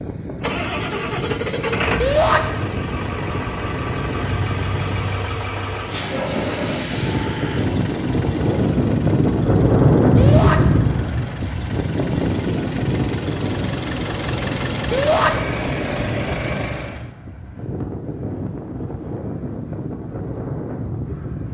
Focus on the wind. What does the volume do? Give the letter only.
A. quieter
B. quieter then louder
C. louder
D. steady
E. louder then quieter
E.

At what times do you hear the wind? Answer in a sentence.
You can hear the wind from 0.0 to 21.4 s.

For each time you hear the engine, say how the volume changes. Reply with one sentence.
You can hear the engine from 0.0 to 17.1 s, getting quieter then louder.